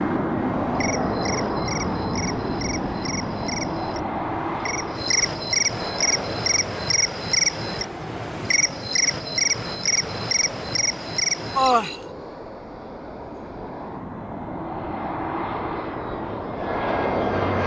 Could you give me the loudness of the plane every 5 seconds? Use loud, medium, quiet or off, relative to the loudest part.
loud, medium, medium, loud.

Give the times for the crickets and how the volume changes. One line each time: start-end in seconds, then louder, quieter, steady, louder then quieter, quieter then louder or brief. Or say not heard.
0.0-12.0 louder.